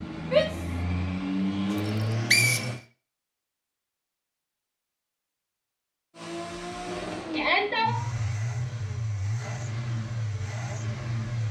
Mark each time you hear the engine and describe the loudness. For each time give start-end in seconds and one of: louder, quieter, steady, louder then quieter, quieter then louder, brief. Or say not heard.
0.0-2.8 brief
6.2-11.4 steady.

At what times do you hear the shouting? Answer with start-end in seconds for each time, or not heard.
0.3-0.8, 7.3-8.0.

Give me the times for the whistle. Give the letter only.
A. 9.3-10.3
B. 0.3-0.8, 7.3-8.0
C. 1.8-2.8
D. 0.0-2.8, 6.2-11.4
C.